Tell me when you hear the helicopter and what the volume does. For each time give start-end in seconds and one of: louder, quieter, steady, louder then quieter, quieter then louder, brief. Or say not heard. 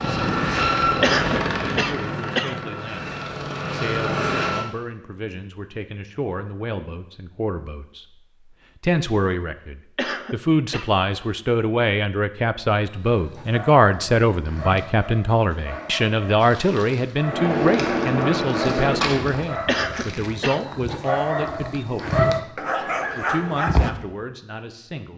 0.0-4.7 quieter then louder
17.2-19.3 brief.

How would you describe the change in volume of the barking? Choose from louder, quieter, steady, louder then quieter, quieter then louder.
louder.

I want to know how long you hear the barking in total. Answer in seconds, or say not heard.
11 s.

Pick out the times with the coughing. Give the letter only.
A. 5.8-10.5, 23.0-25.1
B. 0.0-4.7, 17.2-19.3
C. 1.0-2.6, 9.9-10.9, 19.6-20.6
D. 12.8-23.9
C.